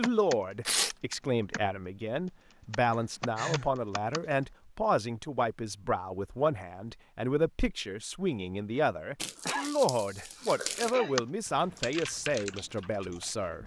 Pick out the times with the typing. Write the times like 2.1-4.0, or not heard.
0.0-4.3, 10.4-13.6.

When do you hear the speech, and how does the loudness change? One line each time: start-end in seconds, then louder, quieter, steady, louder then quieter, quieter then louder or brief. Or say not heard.
0.0-13.6 steady.